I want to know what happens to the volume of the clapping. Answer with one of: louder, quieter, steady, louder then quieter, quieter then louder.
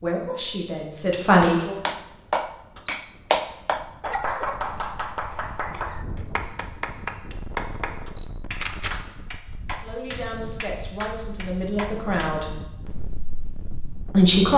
quieter.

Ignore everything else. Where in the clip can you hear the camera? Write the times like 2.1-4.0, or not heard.
2.8-3.4, 8.1-8.9.